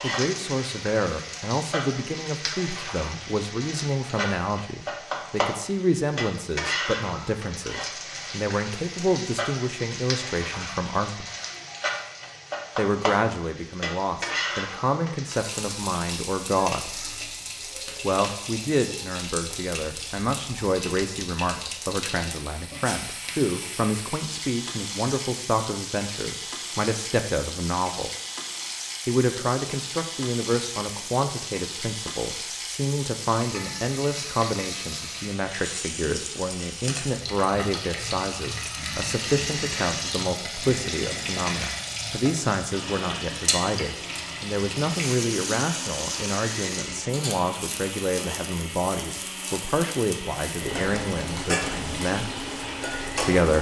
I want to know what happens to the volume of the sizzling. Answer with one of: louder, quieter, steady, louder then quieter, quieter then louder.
steady.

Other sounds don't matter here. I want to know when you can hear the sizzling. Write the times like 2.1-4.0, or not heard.
0.0-53.5.